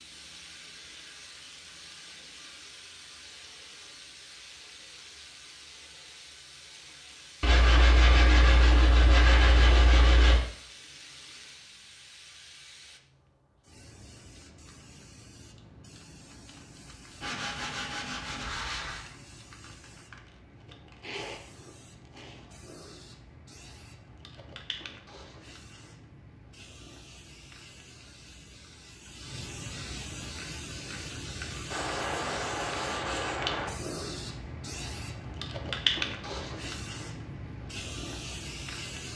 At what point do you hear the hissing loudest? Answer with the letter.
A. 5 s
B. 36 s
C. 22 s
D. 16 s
B.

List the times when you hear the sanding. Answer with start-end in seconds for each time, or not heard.
7.4-10.4, 17.2-19.1, 31.7-33.7.